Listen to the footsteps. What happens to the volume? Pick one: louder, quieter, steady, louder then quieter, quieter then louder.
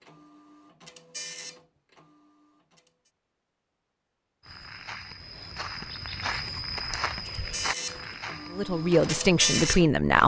louder then quieter.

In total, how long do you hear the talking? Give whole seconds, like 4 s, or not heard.
2 s.